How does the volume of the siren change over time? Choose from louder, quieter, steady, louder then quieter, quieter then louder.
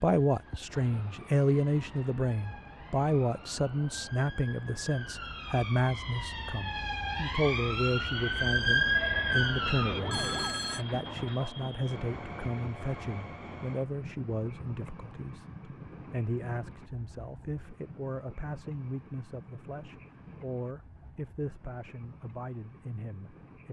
louder.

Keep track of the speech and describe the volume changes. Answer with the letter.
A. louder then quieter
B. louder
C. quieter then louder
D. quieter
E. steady
D.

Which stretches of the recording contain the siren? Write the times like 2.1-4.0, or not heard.
0.2-10.6.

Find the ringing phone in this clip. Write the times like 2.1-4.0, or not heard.
10.1-10.8.